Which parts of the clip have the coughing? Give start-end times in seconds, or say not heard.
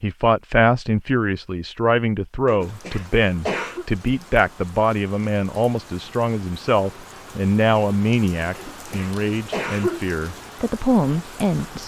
2.5-3.9, 8.6-10.1.